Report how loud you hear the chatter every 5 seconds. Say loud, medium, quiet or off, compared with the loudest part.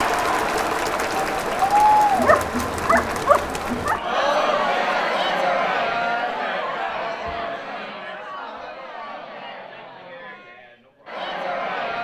loud, medium, medium.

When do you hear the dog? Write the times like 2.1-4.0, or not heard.
2.0-4.0.